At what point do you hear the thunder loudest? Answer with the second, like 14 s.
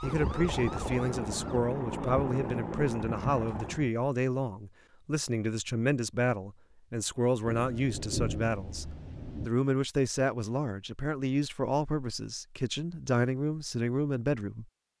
8 s.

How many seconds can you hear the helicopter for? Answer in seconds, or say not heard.
4 s.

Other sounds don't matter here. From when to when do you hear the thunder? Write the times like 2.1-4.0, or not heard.
7.5-9.5.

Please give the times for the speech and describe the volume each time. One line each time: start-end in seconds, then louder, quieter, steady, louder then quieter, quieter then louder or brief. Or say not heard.
0.0-14.7 steady.